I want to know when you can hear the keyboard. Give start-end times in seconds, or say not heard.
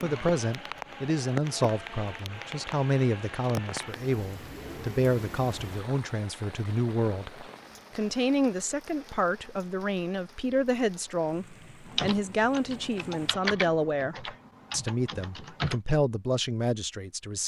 11.8-15.8.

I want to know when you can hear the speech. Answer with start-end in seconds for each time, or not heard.
0.0-17.4.